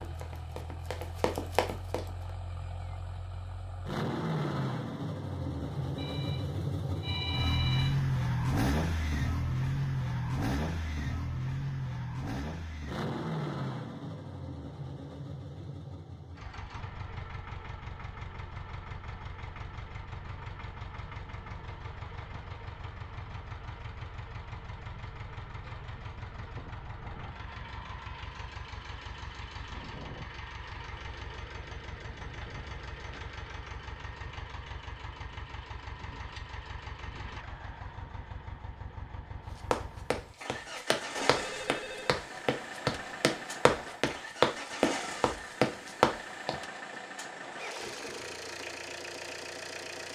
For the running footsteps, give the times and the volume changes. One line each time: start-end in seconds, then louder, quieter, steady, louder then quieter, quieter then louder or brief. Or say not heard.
0.0-2.3 brief
39.5-46.6 louder.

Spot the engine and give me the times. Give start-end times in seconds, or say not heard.
0.0-50.0.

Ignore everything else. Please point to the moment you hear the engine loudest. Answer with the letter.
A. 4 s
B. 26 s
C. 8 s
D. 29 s
C.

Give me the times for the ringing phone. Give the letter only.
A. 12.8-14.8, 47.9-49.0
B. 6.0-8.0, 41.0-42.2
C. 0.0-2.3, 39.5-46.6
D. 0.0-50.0
B.